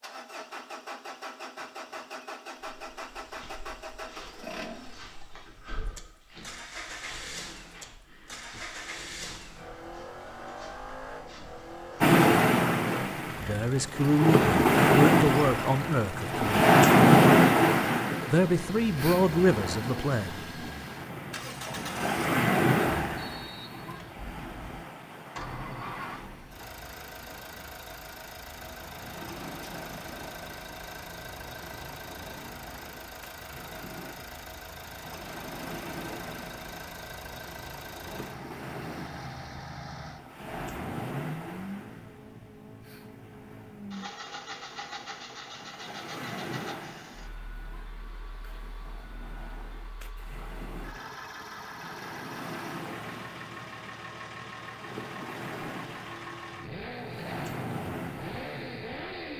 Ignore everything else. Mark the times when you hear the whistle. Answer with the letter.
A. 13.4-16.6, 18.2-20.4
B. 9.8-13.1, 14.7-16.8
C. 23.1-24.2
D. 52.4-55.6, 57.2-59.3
C.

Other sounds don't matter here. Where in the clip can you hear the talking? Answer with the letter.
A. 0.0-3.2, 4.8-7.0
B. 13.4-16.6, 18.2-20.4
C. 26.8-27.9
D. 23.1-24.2
B.